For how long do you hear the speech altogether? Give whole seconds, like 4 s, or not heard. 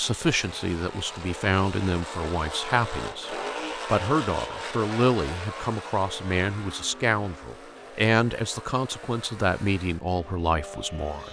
11 s.